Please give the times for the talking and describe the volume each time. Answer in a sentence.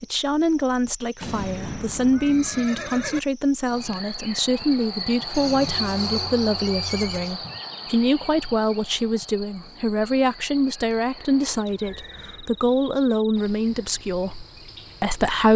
The talking can be heard from 0.0 to 15.5 s, at a steady volume.